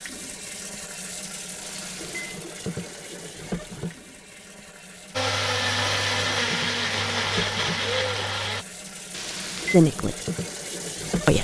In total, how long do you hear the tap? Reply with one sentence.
The tap can be heard for 11 seconds in total.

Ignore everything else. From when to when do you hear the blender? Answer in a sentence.
You can hear the blender from 5.1 to 8.7 s.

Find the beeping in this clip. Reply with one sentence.
You can hear the beeping from 1.6 to 2.5 s and from 9.1 to 9.8 s.